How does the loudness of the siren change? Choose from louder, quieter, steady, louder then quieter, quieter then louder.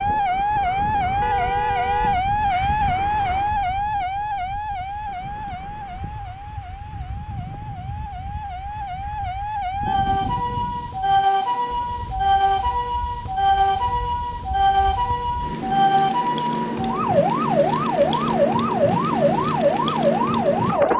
quieter then louder.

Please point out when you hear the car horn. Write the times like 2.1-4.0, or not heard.
1.2-2.2.